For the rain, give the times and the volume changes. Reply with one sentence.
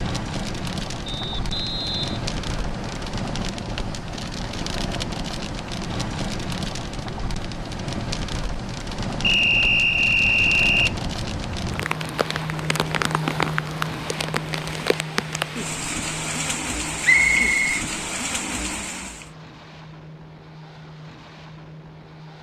The rain can be heard from 0.0 to 19.3 s, at a steady volume.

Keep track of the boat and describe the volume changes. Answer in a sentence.
The loudness of the boat goes down.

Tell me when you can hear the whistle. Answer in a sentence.
The whistle can be heard from 1.1 to 3.0 s, from 9.2 to 10.9 s and from 17.0 to 17.8 s.